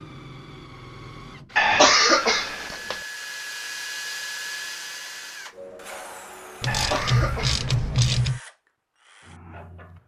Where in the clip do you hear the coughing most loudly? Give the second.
2 s.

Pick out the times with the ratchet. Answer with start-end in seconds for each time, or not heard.
6.6-8.4.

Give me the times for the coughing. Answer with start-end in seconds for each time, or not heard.
1.6-3.0, 6.7-7.7.